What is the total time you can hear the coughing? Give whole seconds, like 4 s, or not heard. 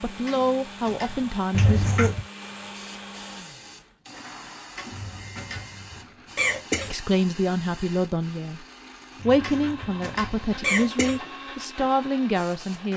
5 s.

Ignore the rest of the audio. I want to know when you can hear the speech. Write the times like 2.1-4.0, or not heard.
0.0-2.1, 6.8-8.7, 9.2-12.9.